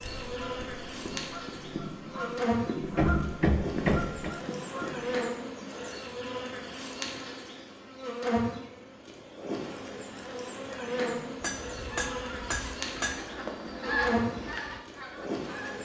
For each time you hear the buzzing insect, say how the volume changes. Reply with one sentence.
You can hear the buzzing insect from 0.0 to 15.8 s, at a steady volume.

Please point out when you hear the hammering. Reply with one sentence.
You can hear the hammering from 2.8 to 4.3 s and from 11.4 to 13.3 s.